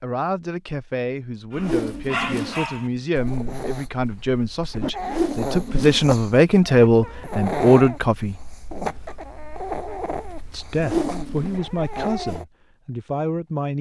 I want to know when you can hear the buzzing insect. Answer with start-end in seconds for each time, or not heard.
not heard.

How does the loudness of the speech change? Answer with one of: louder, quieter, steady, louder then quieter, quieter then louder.
louder then quieter.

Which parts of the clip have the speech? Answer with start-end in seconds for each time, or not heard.
0.0-8.3, 10.5-13.7.